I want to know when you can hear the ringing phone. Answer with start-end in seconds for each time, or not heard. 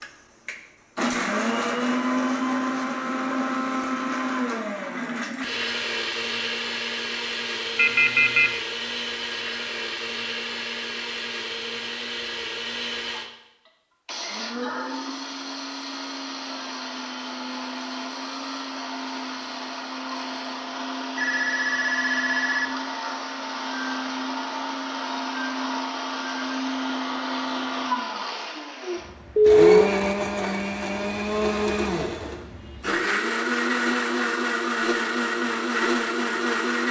7.8-8.5, 21.1-22.8, 29.4-30.3.